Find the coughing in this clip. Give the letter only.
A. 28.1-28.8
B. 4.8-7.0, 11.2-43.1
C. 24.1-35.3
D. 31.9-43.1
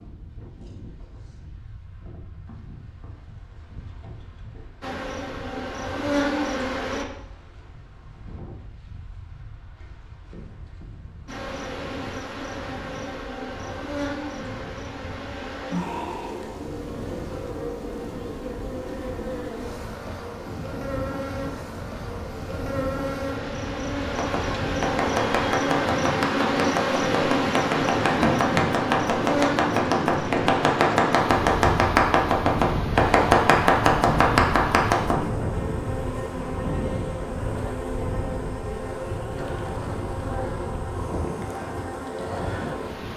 A.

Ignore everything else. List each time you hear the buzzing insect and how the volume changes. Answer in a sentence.
You can hear the buzzing insect briefly from 4.8 to 7.0 s; and from 11.2 to 43.1 s, getting louder then quieter.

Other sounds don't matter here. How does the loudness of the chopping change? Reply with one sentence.
The loudness of the chopping goes up.